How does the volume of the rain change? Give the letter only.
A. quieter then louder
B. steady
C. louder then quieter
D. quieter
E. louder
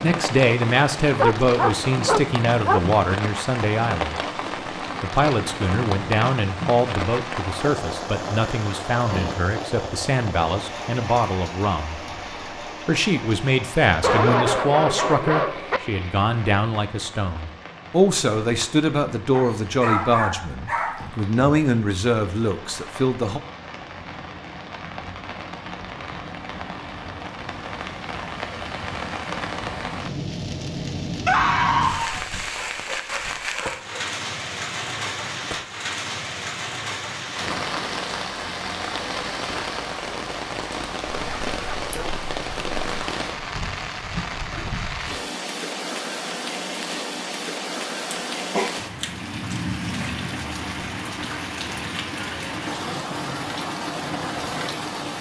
A.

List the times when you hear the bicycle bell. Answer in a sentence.
The bicycle bell can't be heard in this clip.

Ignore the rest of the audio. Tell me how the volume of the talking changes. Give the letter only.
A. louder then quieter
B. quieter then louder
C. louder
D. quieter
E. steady
E.